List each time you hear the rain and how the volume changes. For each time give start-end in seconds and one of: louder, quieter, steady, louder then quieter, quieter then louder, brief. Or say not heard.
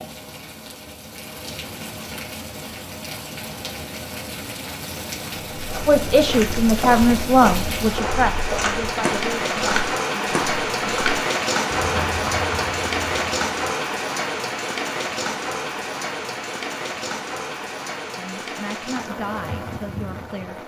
0.0-20.6 louder then quieter.